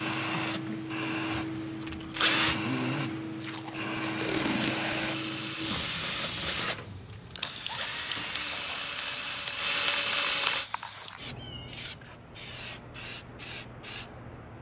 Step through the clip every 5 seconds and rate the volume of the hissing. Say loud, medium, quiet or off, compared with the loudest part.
loud, loud, medium.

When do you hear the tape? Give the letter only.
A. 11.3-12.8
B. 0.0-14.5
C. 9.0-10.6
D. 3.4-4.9
D.